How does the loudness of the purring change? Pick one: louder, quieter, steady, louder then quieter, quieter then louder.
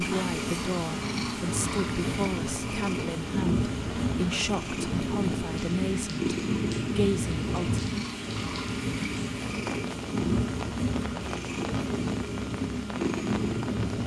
steady.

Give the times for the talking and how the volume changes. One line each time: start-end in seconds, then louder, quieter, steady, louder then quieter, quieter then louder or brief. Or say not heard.
0.0-6.3 steady
7.0-7.8 brief.